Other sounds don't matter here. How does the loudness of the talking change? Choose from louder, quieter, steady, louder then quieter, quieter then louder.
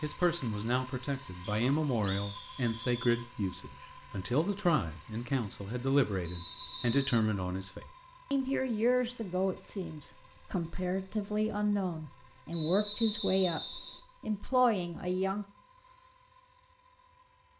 steady.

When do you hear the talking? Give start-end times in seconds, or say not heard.
0.0-15.4.